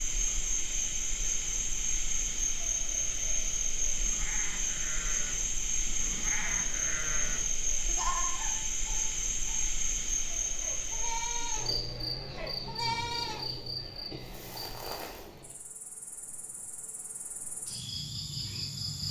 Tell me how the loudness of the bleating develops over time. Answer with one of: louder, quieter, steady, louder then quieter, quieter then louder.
louder.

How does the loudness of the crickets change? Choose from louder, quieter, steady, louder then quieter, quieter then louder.
quieter.